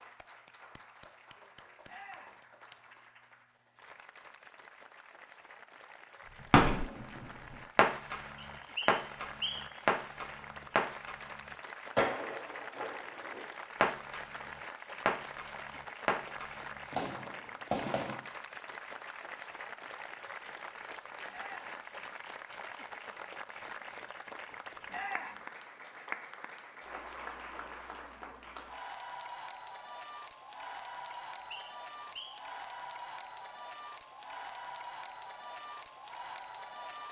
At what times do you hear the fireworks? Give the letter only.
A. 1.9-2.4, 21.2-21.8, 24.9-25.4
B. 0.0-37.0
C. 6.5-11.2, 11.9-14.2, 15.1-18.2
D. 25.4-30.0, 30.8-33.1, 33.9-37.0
C.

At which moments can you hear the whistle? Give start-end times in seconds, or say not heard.
8.3-9.8, 31.1-32.5.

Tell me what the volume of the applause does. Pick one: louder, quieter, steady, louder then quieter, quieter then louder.
louder.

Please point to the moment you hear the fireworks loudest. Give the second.
7 s.